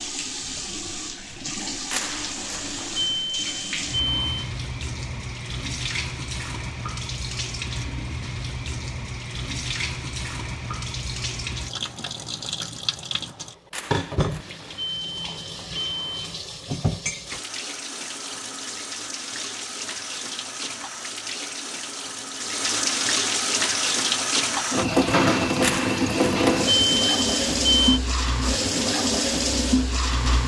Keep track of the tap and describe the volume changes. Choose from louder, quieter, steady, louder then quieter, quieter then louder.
louder.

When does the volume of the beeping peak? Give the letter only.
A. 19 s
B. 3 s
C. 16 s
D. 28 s
D.